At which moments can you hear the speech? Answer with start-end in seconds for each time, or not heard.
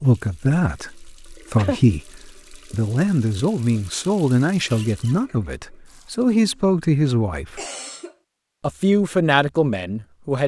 0.0-7.6, 8.6-10.4.